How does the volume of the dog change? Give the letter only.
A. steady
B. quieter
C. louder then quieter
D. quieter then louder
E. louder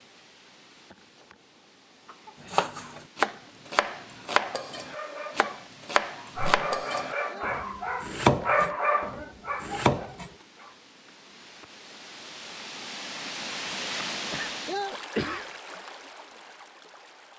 C.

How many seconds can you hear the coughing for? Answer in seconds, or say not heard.
2 s.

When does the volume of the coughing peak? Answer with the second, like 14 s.
15 s.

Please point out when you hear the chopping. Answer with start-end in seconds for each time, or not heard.
2.5-10.3.